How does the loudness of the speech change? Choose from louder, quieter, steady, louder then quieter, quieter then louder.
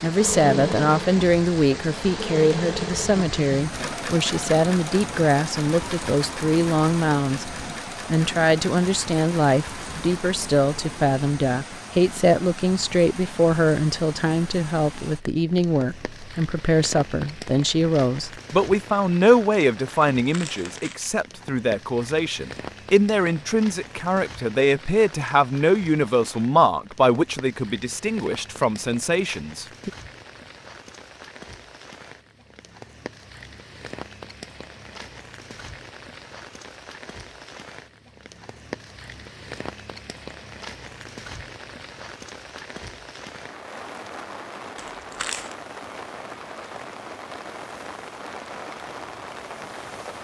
steady.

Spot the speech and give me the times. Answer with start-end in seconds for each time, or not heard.
0.0-29.9.